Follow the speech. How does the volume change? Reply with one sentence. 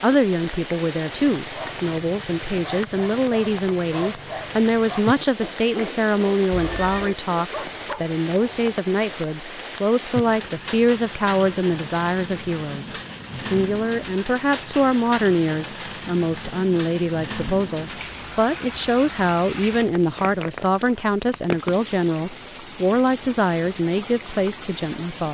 The loudness of the speech stays about the same.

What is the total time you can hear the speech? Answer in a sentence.
The speech can be heard for 25 seconds in total.